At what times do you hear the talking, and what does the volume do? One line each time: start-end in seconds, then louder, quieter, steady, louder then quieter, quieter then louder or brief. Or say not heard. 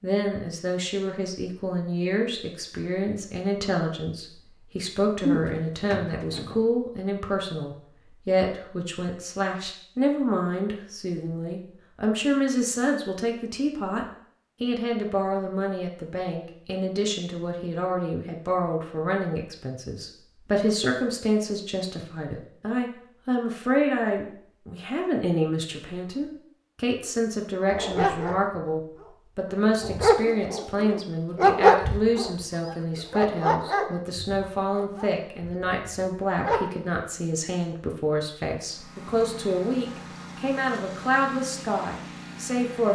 0.0-42.9 steady.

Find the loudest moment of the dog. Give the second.
32 s.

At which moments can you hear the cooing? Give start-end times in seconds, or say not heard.
5.2-6.6.